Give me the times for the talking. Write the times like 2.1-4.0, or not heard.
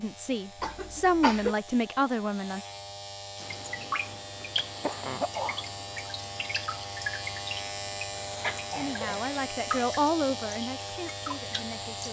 0.0-2.6, 8.8-12.0.